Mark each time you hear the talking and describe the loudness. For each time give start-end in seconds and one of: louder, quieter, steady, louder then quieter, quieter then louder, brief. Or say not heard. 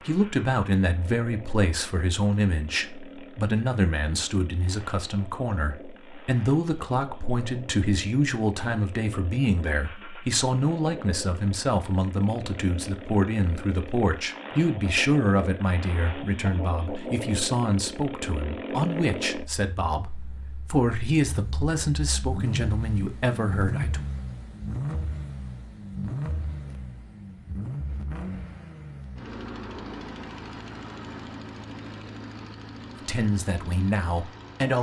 0.0-24.0 steady
33.0-34.7 brief.